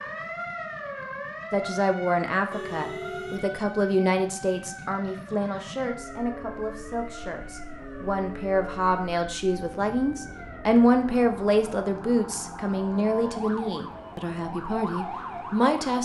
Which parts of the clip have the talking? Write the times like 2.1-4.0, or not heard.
1.5-16.0.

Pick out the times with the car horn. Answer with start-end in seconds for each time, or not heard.
2.5-3.6.